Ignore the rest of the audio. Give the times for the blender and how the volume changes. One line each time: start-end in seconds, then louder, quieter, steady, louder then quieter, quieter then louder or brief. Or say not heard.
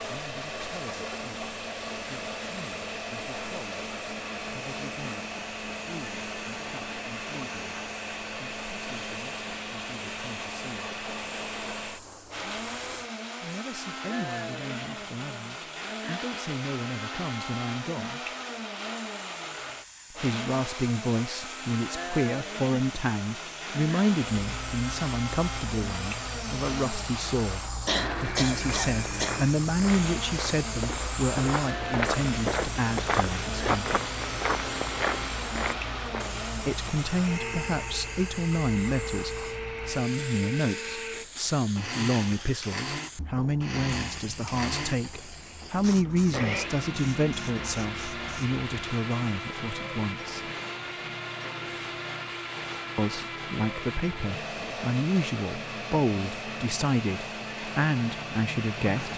0.0-59.1 steady.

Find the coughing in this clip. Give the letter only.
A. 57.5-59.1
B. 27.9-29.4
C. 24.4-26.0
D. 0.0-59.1
B.